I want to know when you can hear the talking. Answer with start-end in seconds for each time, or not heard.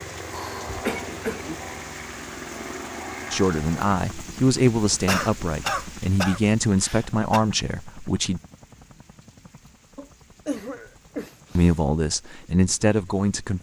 3.3-8.4, 11.6-13.5.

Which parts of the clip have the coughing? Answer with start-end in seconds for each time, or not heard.
0.3-1.6, 4.9-7.4, 9.9-11.8.